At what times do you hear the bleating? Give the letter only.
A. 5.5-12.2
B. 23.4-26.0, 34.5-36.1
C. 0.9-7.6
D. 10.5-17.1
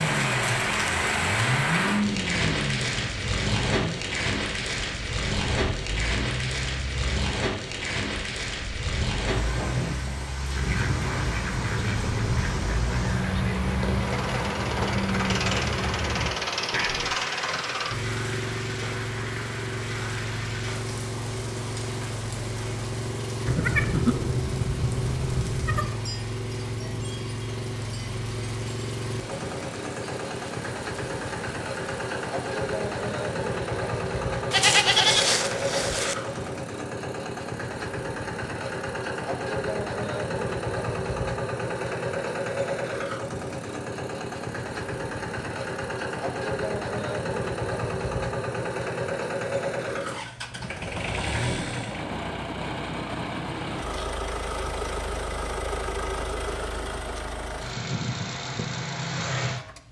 B.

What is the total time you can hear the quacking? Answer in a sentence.
The quacking can be heard for 7 seconds in total.